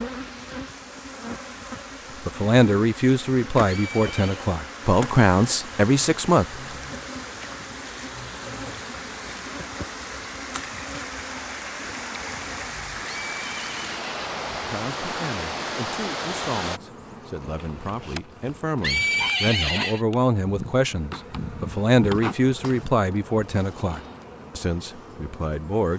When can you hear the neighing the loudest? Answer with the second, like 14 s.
19 s.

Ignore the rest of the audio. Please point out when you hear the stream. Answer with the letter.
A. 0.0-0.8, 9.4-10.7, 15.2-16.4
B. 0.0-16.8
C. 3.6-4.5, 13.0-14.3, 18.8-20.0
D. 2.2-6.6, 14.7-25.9
B.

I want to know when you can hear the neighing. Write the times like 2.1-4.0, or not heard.
3.6-4.5, 13.0-14.3, 18.8-20.0.